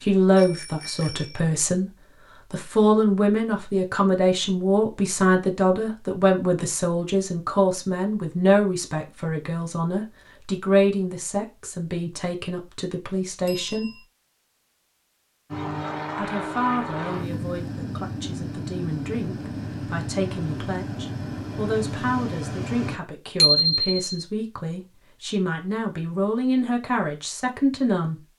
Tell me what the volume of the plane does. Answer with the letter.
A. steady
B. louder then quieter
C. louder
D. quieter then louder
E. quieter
A.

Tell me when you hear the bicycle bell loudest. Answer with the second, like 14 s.
24 s.